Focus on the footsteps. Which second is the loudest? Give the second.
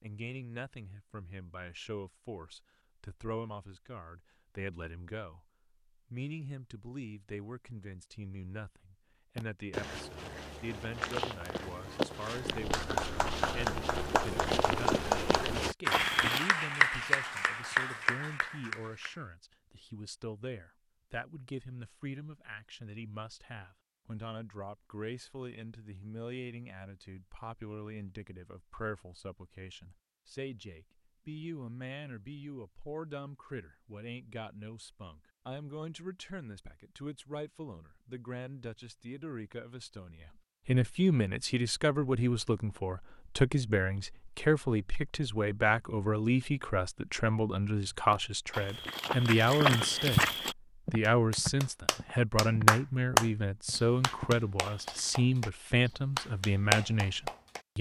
50 s.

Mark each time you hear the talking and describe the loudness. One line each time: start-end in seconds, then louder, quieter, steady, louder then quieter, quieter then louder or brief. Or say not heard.
0.0-57.7 louder.